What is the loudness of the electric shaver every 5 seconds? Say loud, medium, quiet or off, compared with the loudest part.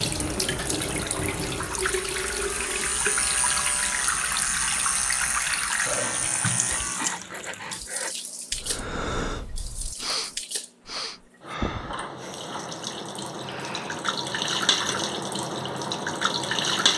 loud, loud, off, off.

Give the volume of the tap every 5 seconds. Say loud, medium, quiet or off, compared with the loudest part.
loud, medium, medium, loud.